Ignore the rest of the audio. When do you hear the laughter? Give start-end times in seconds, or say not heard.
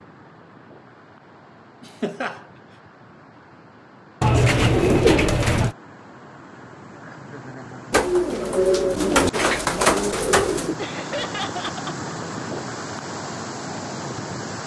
1.8-2.4, 7.0-8.0, 10.8-12.0.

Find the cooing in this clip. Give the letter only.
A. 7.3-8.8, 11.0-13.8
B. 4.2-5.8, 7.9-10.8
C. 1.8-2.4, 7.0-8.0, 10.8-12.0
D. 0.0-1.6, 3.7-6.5
B.